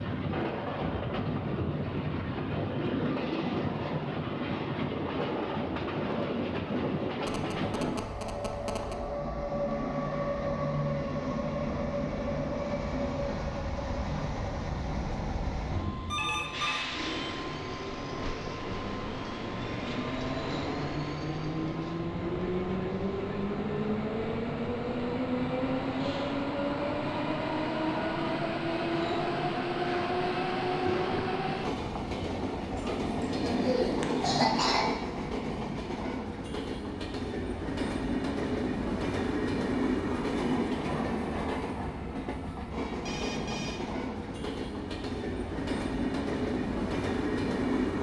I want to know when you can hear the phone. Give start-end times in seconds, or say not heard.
7.2-8.9, 16.1-16.9, 42.9-43.8.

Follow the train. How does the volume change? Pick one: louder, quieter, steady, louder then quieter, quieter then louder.
steady.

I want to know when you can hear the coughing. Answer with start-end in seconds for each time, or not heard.
33.5-34.9.